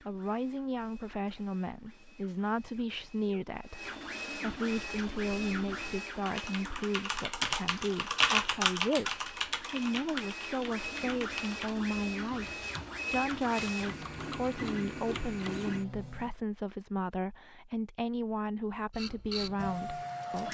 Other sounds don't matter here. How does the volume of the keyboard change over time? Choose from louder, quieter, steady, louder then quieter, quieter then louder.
louder then quieter.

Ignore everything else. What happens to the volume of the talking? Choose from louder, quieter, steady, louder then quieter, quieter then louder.
steady.